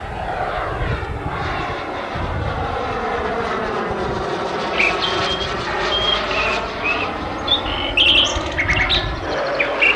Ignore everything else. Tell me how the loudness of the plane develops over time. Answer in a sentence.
The loudness of the plane stays about the same.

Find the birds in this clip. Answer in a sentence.
The birds can be heard from 4.7 to 9.9 s.